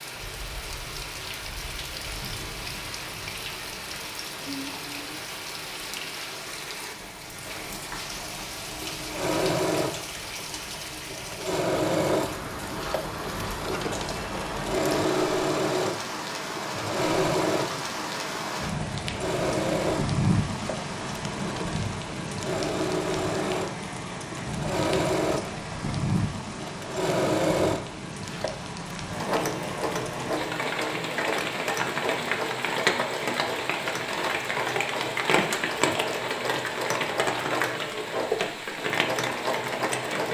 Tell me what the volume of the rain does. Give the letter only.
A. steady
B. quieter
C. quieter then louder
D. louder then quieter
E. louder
E.